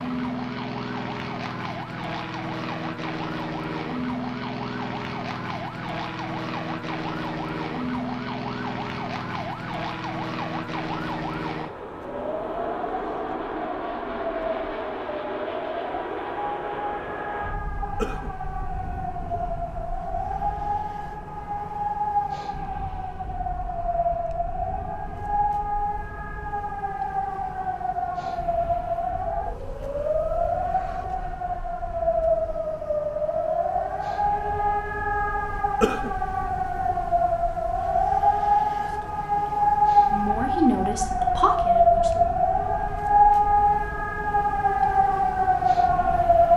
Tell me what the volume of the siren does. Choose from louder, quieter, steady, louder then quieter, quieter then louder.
louder.